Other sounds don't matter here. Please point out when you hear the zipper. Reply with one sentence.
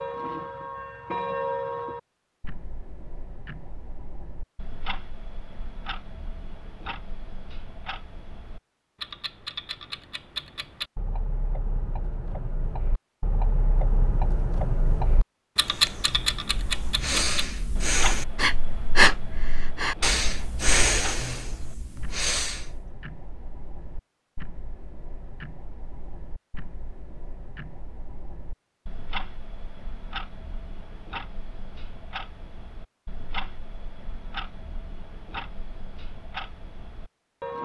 You can't hear the zipper here.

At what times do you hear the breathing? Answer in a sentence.
You can hear the breathing from 15.7 to 22.9 s.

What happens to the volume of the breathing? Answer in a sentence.
The loudness of the breathing goes up, then down.